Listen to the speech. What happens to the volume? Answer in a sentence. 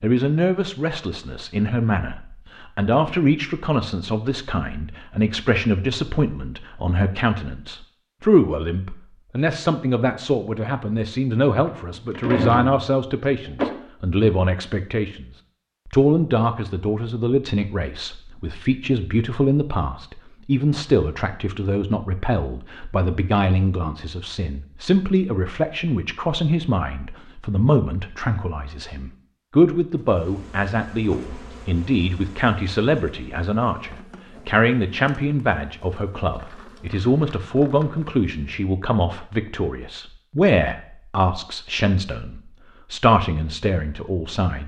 The volume of the speech stays about the same.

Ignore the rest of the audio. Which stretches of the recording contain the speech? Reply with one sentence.
You can hear the speech from 0.0 to 44.6 s.